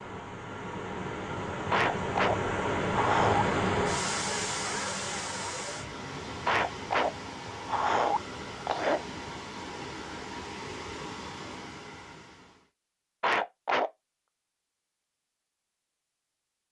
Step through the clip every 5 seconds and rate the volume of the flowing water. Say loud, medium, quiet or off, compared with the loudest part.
loud, medium, medium, off.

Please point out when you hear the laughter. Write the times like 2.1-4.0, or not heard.
1.7-3.5, 6.5-9.1, 13.2-13.9.